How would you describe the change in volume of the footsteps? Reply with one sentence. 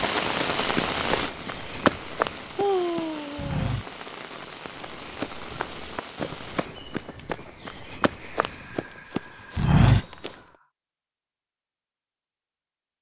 The volume of the footsteps goes down, then up.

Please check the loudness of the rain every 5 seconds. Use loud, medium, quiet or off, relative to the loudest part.
loud, medium, off.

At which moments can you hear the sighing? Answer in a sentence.
You can hear the sighing from 2.5 to 3.8 s and from 8.2 to 10.7 s.